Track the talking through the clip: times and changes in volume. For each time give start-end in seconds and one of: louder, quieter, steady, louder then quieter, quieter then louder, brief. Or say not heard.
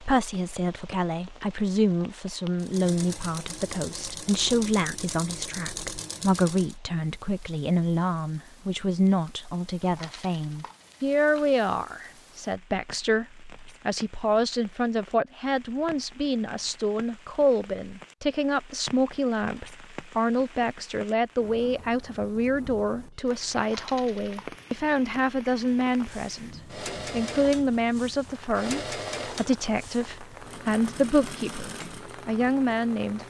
0.0-33.2 steady.